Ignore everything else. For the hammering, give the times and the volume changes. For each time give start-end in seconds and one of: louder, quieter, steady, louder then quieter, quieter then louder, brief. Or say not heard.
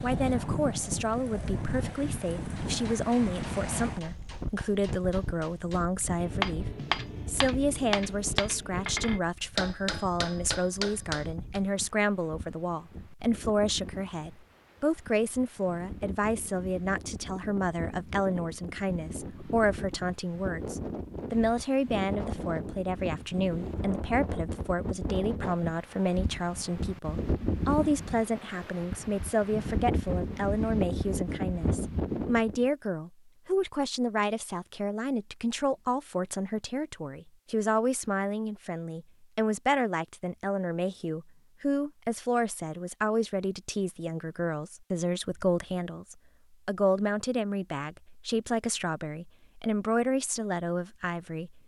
2.4-11.6 louder.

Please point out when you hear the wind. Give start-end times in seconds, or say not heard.
0.0-32.6.